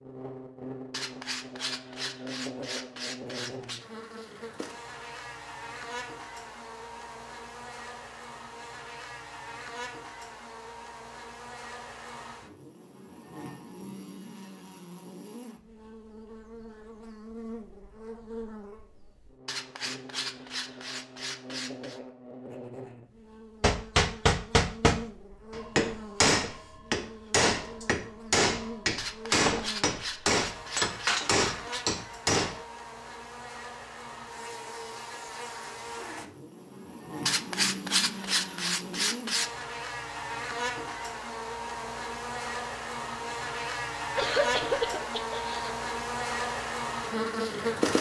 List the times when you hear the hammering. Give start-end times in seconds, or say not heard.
23.6-32.6.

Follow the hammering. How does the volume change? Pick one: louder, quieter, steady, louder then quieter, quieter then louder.
steady.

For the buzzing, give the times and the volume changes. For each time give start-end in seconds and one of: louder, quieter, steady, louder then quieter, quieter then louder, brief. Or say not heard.
0.0-47.9 louder.